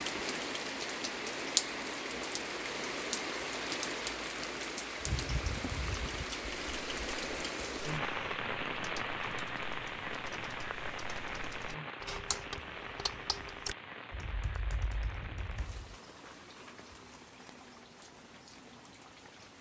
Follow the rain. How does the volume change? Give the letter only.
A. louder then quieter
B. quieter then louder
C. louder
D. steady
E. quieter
E.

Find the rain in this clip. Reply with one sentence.
You can hear the rain from 0.0 to 19.5 s.